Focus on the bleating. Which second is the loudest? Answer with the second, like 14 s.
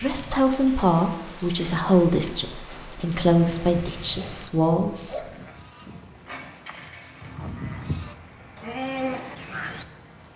9 s.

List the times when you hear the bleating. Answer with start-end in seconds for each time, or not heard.
3.5-9.8.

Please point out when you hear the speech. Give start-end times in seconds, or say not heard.
0.0-5.2.